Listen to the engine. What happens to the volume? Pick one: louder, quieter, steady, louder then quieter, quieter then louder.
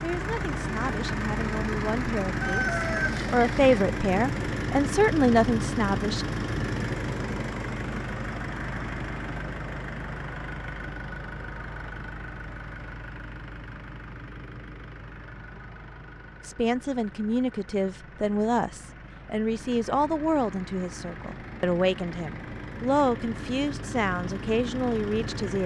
quieter then louder.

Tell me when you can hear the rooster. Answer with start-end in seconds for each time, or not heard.
2.4-3.9.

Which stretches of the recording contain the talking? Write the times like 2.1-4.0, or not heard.
0.0-6.3, 16.4-25.6.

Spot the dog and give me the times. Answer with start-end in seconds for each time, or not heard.
not heard.